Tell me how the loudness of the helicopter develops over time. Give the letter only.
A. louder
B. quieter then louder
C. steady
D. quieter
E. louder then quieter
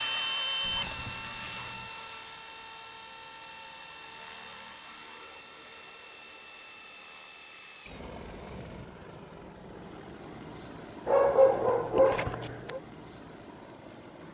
D.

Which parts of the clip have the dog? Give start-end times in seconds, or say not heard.
0.7-1.7, 11.1-12.8.